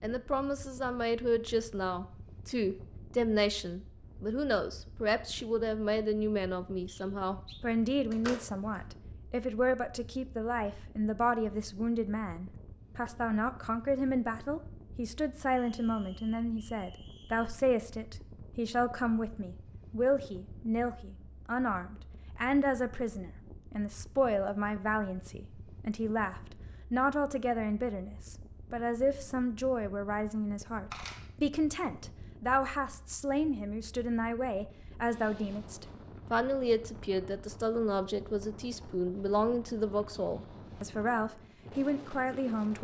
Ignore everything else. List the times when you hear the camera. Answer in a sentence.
The camera can be heard from 8.1 to 8.8 s and from 30.9 to 31.3 s.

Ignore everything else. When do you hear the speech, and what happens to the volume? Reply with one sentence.
You can hear the speech from 0.0 to 42.7 s, at a steady volume.